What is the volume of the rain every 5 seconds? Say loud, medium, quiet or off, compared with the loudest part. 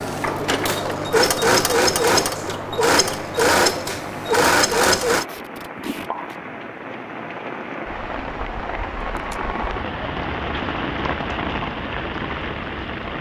medium, loud, loud.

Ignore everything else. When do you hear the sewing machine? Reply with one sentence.
The sewing machine can be heard from 0.0 to 5.2 s.